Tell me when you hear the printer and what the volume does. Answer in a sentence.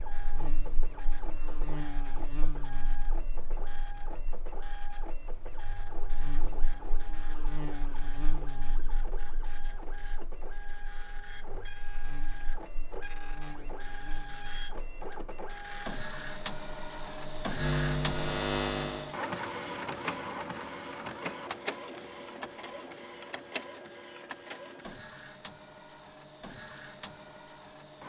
You can hear the printer from 0.0 to 28.0 s, getting louder then quieter.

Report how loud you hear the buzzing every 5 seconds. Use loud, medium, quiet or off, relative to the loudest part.
quiet, quiet, quiet, loud, off, off.